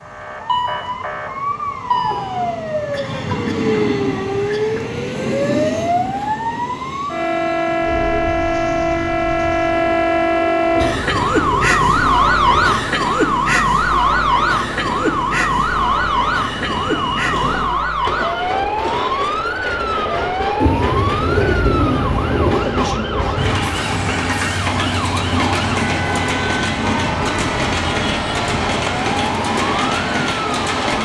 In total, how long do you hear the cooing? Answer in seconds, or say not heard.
4 s.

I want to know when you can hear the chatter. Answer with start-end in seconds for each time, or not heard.
not heard.